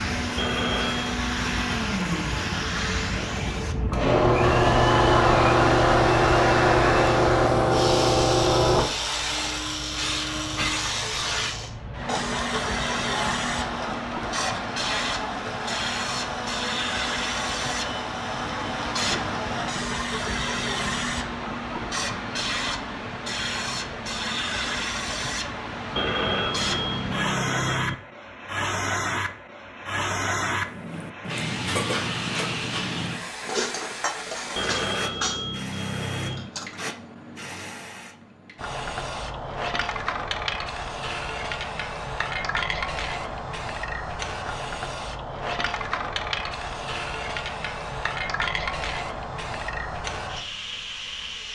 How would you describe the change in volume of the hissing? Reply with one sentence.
The loudness of the hissing goes down.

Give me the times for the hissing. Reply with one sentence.
The hissing can be heard from 0.0 to 51.5 s.